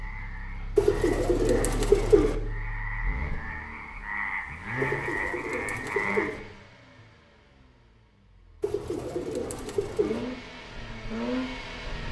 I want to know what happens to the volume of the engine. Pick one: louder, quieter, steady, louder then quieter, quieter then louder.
quieter then louder.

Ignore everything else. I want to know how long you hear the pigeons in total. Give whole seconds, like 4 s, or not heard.
5 s.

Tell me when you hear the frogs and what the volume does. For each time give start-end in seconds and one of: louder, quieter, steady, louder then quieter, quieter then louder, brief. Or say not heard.
0.0-6.3 louder.